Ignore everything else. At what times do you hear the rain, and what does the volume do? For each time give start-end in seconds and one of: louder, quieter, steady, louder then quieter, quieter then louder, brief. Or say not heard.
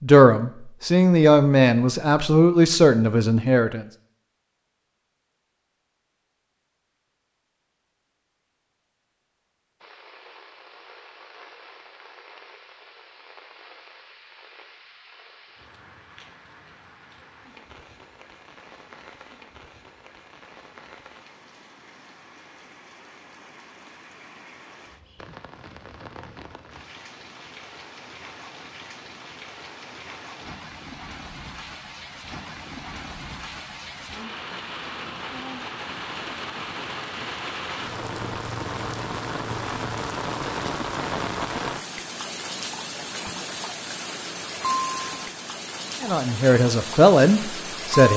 9.8-48.1 louder.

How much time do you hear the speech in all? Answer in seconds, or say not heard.
6 s.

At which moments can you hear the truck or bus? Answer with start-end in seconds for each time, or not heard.
not heard.